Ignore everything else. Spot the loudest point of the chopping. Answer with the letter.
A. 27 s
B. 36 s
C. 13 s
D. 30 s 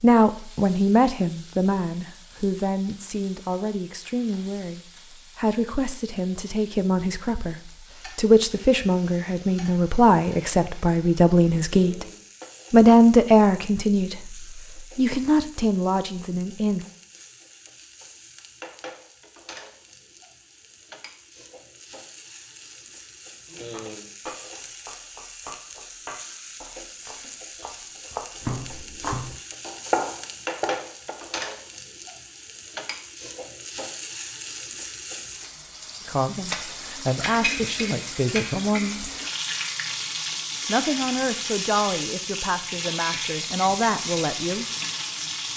D.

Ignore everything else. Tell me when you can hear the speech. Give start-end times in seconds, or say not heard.
0.0-12.1, 12.7-16.9, 36.0-39.1, 40.6-44.6.